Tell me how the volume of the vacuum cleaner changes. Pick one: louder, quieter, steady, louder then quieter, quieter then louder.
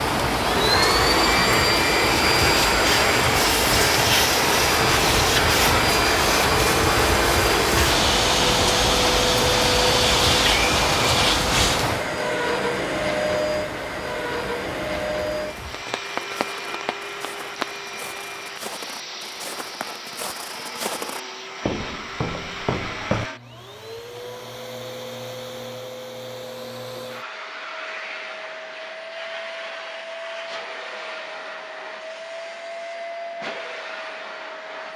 quieter.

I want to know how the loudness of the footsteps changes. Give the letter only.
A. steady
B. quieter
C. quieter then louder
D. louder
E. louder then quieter
D.